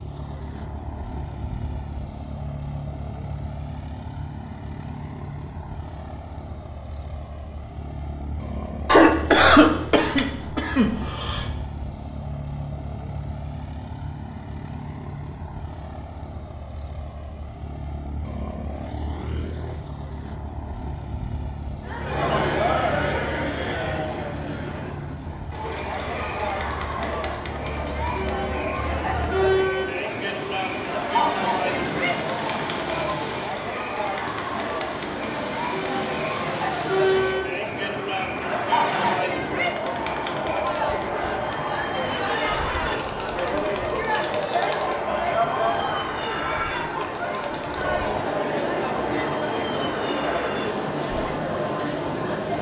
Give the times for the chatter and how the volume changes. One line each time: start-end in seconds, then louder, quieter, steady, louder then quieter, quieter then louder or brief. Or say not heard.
21.8-52.5 steady.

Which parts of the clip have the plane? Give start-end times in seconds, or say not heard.
0.0-52.5.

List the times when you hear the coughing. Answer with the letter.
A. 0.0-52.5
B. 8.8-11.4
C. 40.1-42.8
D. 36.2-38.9
B.